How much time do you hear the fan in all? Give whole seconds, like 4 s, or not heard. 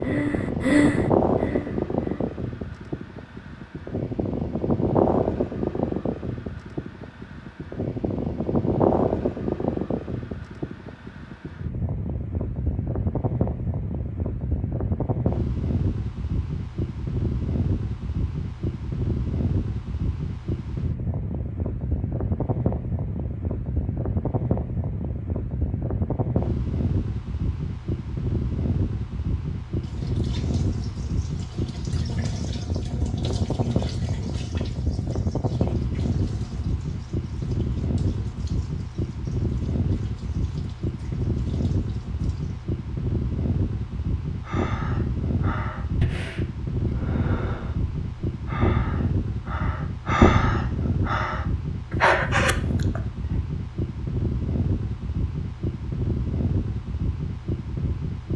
58 s.